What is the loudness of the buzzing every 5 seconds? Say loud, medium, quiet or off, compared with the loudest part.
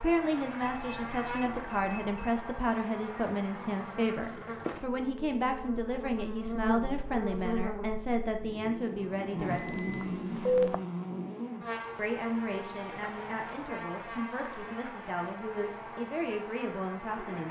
loud, loud, loud, medium.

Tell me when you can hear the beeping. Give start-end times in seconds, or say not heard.
0.6-2.4, 9.5-10.8.